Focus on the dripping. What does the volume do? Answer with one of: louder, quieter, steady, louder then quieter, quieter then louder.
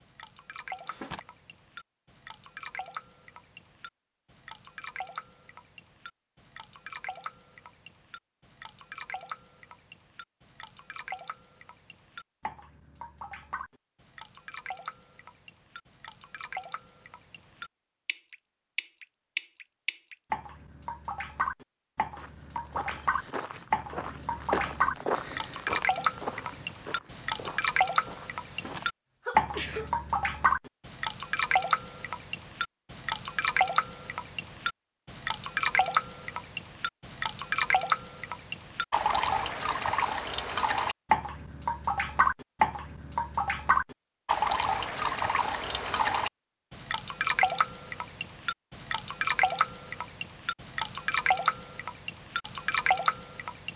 louder.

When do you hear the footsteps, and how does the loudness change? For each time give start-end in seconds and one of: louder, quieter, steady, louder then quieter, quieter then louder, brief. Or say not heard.
22.1-28.8 louder then quieter.